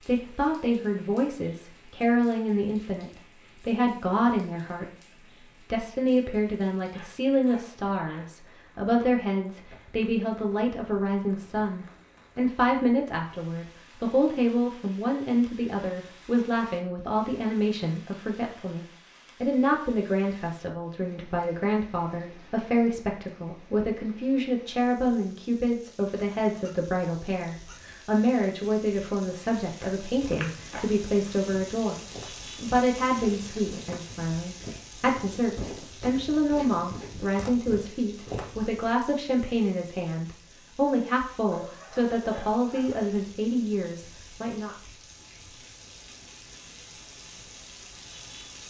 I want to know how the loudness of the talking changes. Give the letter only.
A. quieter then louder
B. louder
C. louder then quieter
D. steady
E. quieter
D.